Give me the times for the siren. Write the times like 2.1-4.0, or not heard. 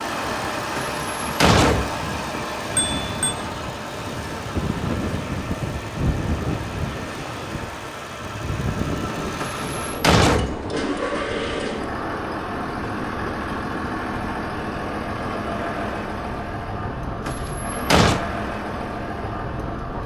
not heard.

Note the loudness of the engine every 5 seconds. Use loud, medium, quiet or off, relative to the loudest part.
loud, medium, loud, loud.